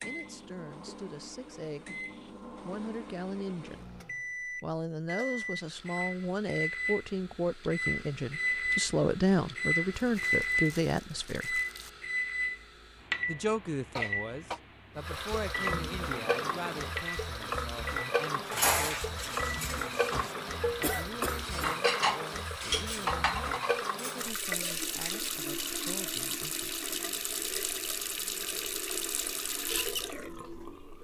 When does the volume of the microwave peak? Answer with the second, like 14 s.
10 s.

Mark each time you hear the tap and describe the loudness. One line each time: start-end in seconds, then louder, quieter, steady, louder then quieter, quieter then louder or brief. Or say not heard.
14.9-30.9 steady.